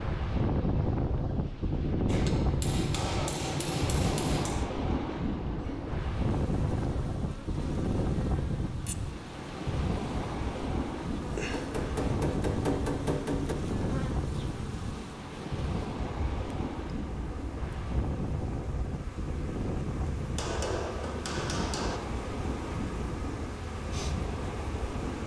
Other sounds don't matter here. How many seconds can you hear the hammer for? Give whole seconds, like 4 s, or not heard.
6 s.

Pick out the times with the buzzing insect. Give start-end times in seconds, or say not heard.
5.5-25.2.